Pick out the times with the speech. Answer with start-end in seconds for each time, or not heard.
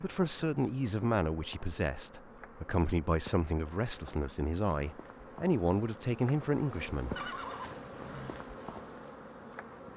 0.0-7.2.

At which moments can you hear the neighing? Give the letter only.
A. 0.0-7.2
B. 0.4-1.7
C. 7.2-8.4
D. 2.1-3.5
C.